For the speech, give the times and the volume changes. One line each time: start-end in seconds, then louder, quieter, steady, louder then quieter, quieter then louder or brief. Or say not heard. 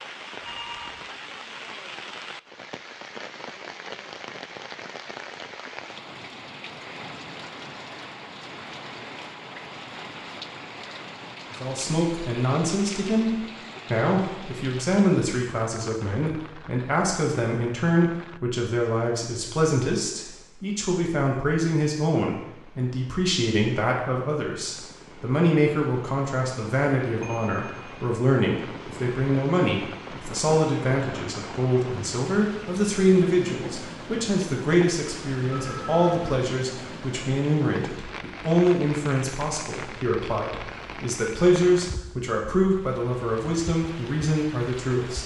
11.6-45.2 steady.